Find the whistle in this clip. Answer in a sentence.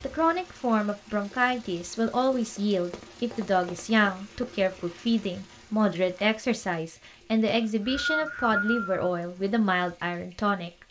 You can hear the whistle from 7.5 to 9.1 s.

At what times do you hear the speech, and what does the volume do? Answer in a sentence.
The speech can be heard from 0.0 to 10.8 s, at a steady volume.